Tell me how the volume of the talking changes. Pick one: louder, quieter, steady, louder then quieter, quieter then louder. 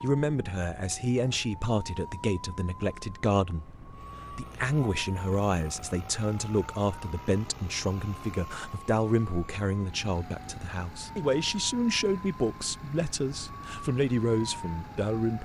steady.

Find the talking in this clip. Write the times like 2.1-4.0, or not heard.
0.0-15.4.